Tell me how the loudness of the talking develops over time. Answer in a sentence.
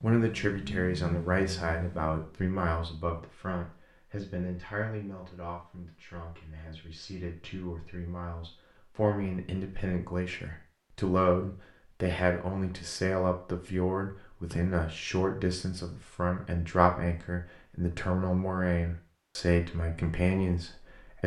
The volume of the talking goes down, then up.